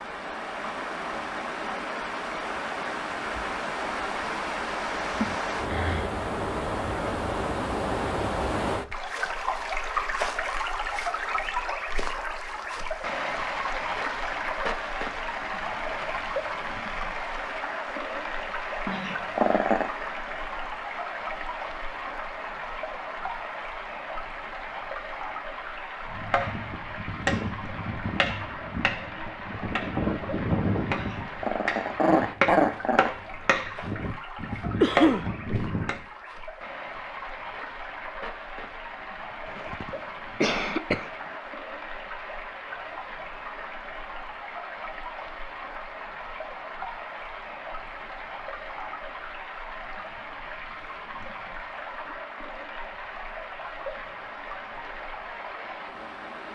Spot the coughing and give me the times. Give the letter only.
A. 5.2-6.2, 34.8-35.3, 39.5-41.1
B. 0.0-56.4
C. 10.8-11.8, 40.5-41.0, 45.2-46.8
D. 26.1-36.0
A.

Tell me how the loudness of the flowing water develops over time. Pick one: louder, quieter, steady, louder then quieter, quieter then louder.
quieter.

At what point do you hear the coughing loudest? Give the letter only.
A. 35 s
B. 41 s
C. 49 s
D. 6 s
A.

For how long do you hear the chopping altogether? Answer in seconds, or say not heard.
10 s.